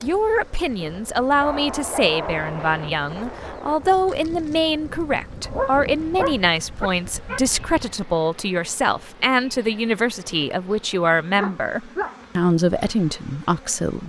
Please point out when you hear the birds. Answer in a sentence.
The birds can't be heard in this clip.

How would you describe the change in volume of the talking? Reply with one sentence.
The loudness of the talking stays about the same.